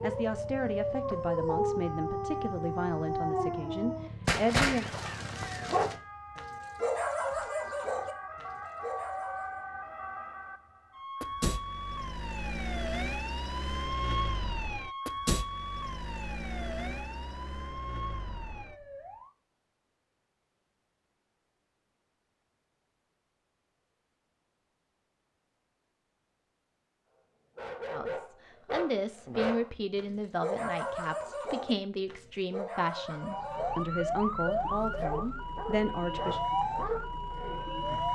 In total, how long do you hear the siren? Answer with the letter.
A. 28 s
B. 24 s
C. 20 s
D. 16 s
B.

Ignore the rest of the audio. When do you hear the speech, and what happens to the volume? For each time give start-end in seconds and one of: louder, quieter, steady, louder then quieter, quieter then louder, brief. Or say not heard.
0.0-4.8 steady
27.9-36.4 steady.